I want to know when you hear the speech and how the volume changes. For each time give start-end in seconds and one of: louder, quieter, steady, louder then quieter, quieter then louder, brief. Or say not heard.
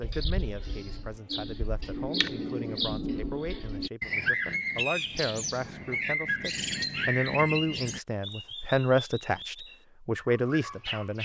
0.0-11.2 louder.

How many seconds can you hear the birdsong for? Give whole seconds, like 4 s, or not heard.
11 s.